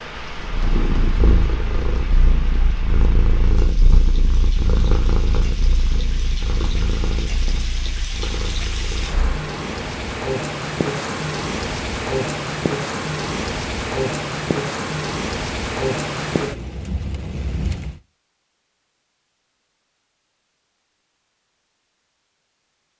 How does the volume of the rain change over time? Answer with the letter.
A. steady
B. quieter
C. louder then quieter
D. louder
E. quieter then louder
D.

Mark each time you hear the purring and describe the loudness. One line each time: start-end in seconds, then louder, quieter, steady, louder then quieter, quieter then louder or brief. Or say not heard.
0.1-9.3 quieter.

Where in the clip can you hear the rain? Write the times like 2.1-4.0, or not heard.
0.0-18.0.